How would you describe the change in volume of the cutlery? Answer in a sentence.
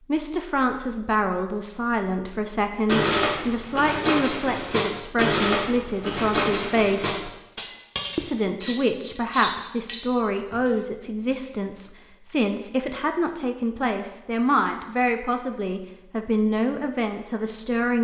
The loudness of the cutlery goes down.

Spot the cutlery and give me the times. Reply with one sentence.
You can hear the cutlery from 2.9 to 11.6 s.